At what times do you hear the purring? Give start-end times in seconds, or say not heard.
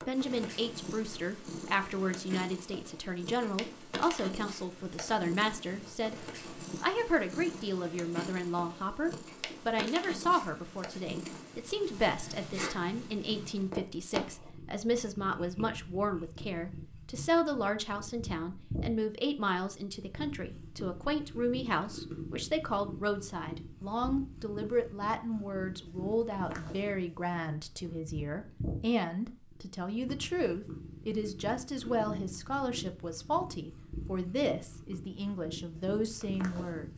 0.0-36.9.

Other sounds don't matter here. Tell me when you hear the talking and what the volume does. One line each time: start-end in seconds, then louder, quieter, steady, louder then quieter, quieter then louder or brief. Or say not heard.
0.1-36.9 steady.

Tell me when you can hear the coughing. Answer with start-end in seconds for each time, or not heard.
not heard.